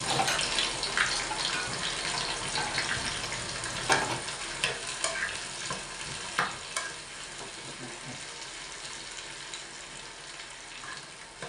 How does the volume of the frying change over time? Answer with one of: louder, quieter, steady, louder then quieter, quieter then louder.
quieter.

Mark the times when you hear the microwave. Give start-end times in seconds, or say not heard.
not heard.